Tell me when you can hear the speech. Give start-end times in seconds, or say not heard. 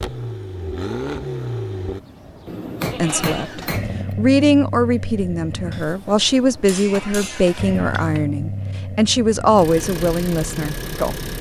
3.0-11.2.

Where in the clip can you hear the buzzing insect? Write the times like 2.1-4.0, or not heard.
not heard.